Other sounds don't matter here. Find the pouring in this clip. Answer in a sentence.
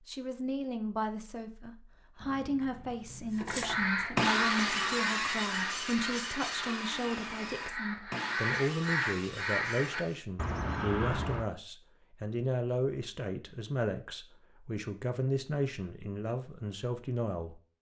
You can't hear the pouring here.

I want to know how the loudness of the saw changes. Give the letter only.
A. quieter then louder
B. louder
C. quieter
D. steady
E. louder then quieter
C.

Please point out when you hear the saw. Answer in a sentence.
You can hear the saw from 3.4 to 10.2 s.